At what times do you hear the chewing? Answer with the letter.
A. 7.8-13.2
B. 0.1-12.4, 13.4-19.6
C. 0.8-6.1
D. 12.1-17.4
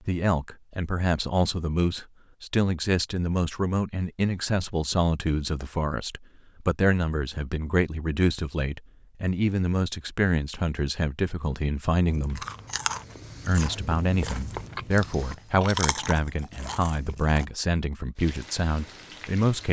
D.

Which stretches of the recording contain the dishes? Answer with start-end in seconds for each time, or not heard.
not heard.